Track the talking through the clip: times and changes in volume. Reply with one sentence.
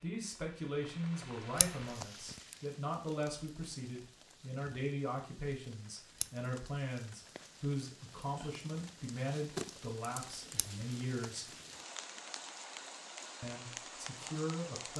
The talking can be heard from 0.0 to 11.5 s, at a steady volume; and briefly from 13.4 to 14.9 s.